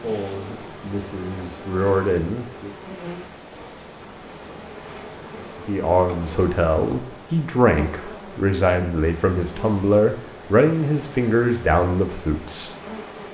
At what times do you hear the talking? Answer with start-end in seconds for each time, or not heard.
0.0-2.7, 5.7-12.8.